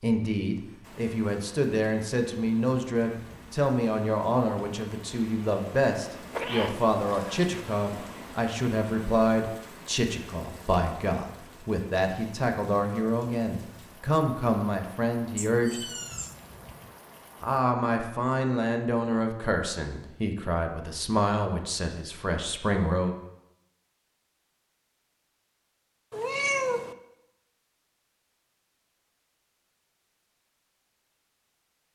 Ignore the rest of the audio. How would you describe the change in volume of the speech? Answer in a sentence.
The loudness of the speech stays about the same.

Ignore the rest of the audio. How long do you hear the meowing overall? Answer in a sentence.
You can hear the meowing for 4 seconds altogether.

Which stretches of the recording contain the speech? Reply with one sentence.
You can hear the speech from 0.0 to 15.8 s and from 17.4 to 23.1 s.